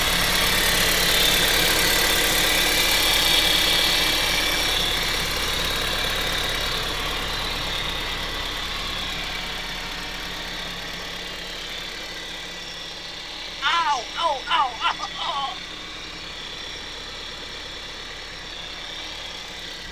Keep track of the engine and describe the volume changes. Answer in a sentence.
The loudness of the engine goes down.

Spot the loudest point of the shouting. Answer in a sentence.
The loudest moment of the shouting is at 14 seconds.